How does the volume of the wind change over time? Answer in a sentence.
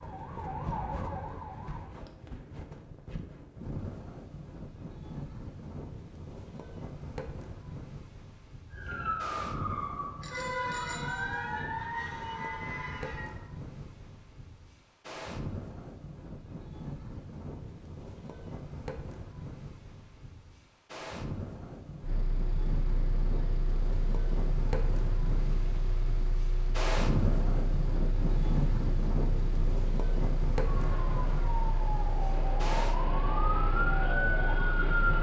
The loudness of the wind goes up.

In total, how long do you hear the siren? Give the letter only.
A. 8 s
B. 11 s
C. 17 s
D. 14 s
B.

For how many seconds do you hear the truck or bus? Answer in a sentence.
The truck or bus can be heard for 13 seconds in total.